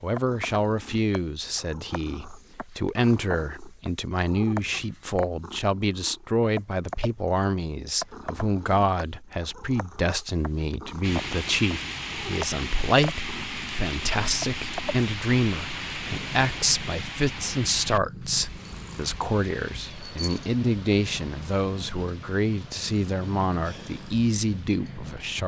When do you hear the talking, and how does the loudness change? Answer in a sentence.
The talking can be heard from 0.0 to 25.4 s, at a steady volume.